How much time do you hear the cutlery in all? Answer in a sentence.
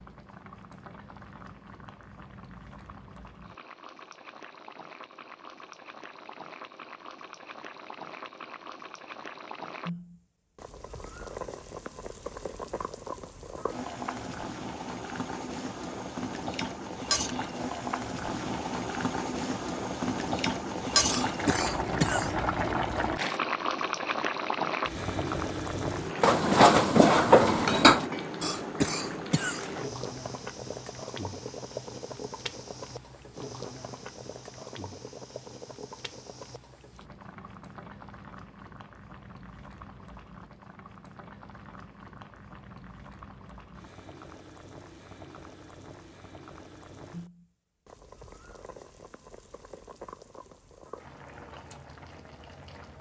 The cutlery can be heard for 2 seconds in total.